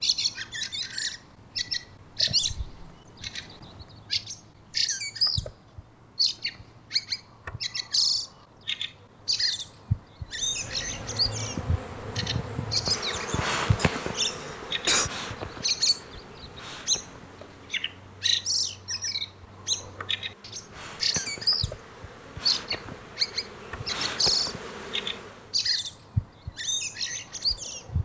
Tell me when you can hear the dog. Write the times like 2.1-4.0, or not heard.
not heard.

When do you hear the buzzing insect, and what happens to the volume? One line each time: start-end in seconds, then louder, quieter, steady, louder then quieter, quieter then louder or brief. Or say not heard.
10.2-25.6 quieter then louder.